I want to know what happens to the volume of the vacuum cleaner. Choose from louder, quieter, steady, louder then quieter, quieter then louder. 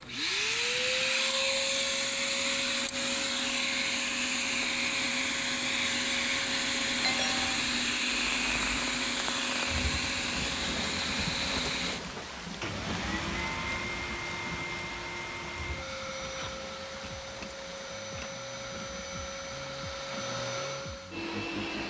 quieter.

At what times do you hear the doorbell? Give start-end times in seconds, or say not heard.
7.0-7.6.